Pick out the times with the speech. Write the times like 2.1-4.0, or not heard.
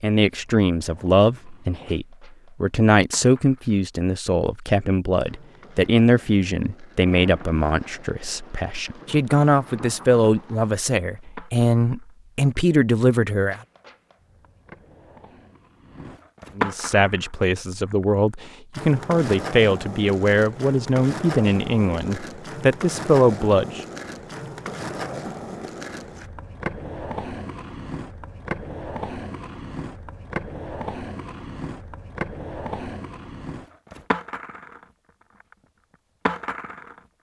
0.0-13.6, 16.6-23.8.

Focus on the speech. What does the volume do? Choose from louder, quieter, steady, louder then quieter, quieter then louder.
steady.